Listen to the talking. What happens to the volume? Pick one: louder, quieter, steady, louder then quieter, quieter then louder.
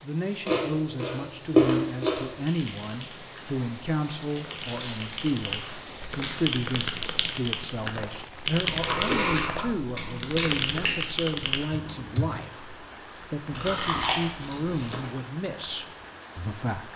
steady.